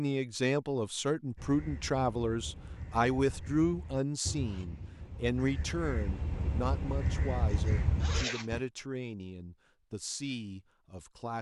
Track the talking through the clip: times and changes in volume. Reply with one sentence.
You can hear the talking from 0.0 to 11.3 s, getting quieter.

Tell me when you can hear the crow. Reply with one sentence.
The crow can be heard from 1.4 to 8.6 s.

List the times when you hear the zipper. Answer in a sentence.
You can hear the zipper from 7.5 to 8.6 s.